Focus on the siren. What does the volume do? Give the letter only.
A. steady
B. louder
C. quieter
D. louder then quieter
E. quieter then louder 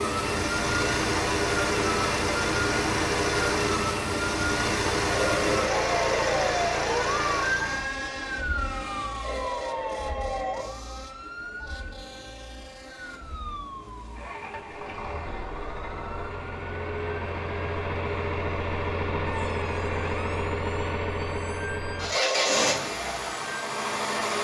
C.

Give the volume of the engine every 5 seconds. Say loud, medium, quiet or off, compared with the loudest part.
loud, loud, quiet, loud, loud.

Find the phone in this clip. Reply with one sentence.
The phone can be heard from 5.0 to 6.4 s, from 9.2 to 10.8 s and from 22.1 to 22.7 s.